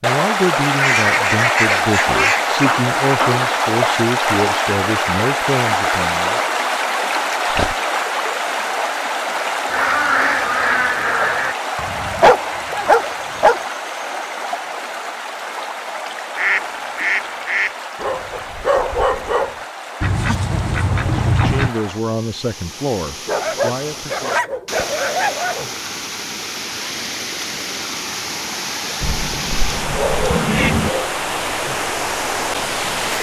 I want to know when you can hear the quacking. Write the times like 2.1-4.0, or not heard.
0.7-2.5, 9.7-11.6, 16.4-17.8, 20.0-21.7, 29.0-30.9.